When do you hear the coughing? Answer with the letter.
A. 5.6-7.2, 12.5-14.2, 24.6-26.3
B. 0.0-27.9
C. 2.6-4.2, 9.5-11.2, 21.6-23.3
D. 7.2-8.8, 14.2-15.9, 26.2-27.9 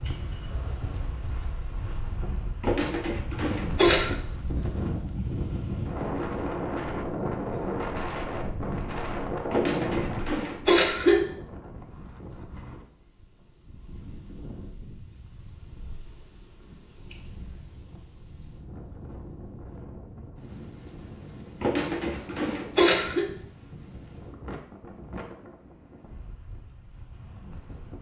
C.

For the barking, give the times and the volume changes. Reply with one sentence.
The barking can't be heard in this clip.